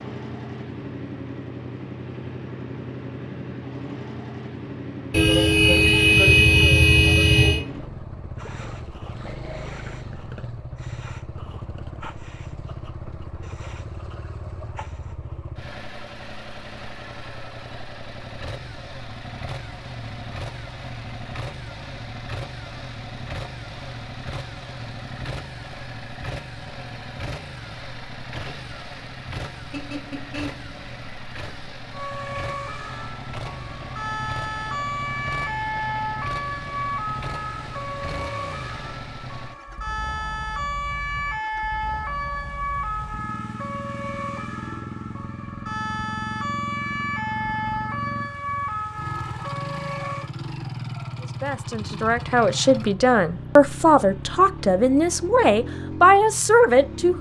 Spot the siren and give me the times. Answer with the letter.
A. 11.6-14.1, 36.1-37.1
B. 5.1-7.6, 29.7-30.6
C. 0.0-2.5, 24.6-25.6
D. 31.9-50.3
D.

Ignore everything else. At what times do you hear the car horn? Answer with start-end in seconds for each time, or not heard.
5.1-7.6, 29.7-30.6.